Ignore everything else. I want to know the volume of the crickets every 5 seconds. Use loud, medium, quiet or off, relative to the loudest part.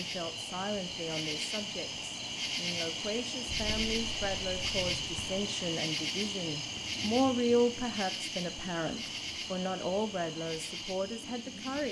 loud, loud, medium.